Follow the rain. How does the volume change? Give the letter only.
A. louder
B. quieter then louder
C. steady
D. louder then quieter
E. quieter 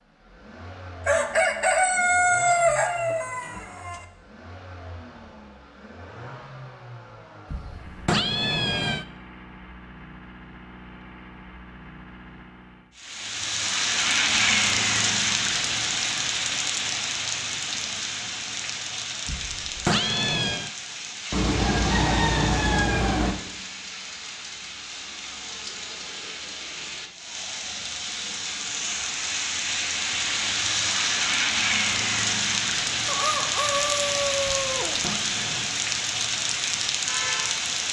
B.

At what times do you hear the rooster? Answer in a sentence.
You can hear the rooster from 1.1 to 4.0 s, from 21.3 to 23.4 s and from 33.0 to 35.0 s.